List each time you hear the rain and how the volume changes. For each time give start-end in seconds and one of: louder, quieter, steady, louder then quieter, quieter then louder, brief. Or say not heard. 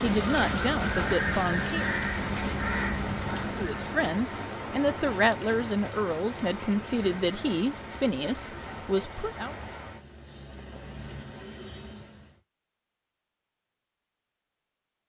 0.0-12.4 quieter.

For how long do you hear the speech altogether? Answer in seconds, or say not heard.
8 s.